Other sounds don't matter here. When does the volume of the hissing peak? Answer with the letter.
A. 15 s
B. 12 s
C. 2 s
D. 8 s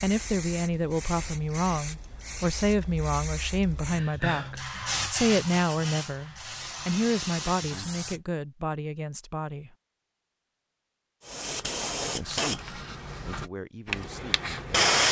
A.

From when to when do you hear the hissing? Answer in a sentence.
You can hear the hissing from 0.0 to 8.2 s and from 11.2 to 15.0 s.